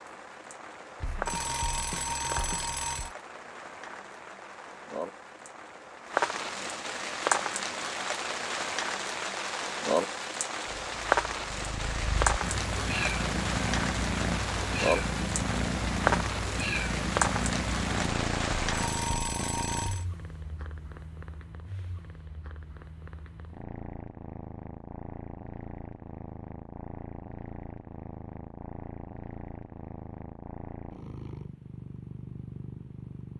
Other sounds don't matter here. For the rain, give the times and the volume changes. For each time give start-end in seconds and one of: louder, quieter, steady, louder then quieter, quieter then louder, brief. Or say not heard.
0.0-19.1 louder.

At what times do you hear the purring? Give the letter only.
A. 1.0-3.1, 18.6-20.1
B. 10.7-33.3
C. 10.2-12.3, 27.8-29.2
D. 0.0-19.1
B.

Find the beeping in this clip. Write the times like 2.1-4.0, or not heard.
1.0-3.1, 18.6-20.1.